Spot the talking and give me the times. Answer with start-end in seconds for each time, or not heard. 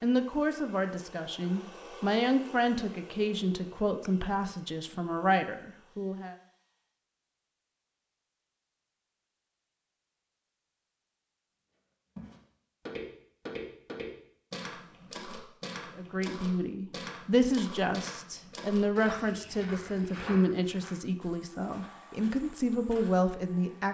0.0-6.3, 15.9-23.8.